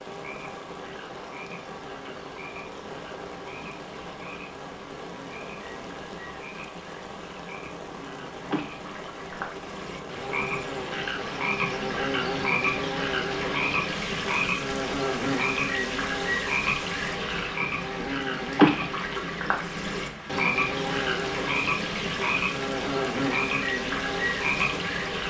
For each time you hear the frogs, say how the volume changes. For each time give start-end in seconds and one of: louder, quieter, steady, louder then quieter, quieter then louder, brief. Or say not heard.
0.0-25.2 louder.